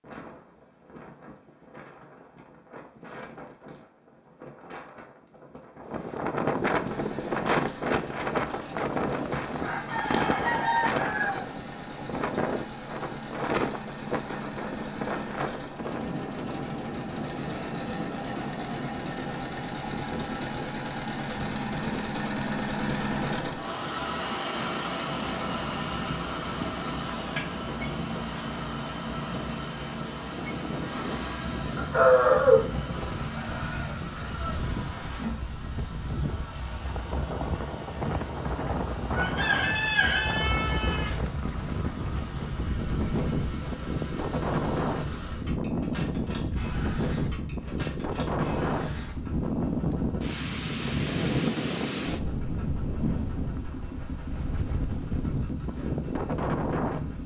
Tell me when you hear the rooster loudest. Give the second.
32 s.